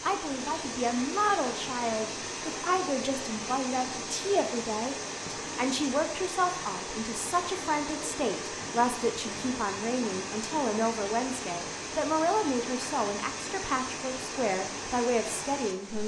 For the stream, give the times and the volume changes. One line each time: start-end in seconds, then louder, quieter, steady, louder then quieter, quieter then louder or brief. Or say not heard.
0.0-16.0 steady.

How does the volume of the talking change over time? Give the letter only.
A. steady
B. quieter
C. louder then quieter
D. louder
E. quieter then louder
A.